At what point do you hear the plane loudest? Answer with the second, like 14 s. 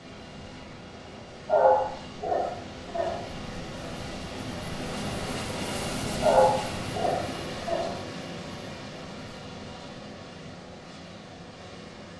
6 s.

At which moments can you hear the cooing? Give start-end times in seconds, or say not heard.
not heard.